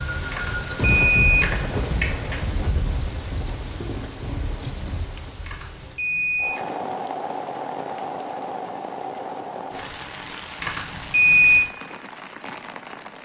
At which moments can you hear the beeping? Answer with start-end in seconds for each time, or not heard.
0.3-2.4, 5.5-6.6, 10.6-11.7.